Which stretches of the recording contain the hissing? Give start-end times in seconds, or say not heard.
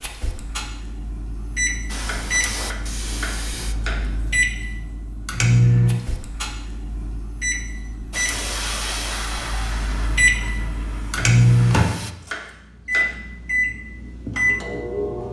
1.9-4.0, 8.1-12.2.